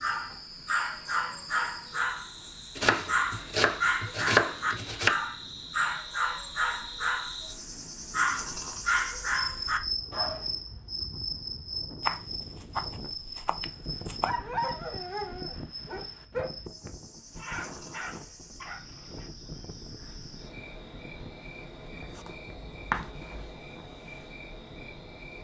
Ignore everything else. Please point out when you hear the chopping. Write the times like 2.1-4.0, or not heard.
2.8-5.2, 12.1-14.3, 21.9-23.3.